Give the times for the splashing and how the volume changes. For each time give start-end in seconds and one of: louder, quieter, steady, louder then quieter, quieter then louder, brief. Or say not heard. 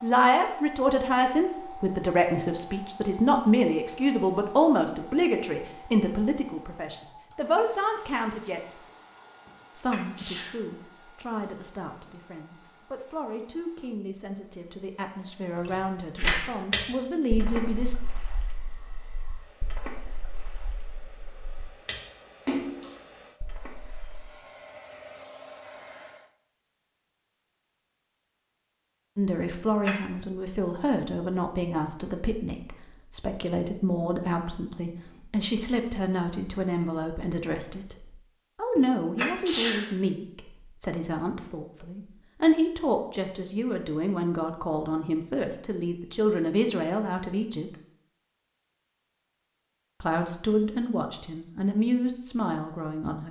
15.7-24.2 quieter then louder.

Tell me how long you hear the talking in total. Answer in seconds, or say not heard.
39 s.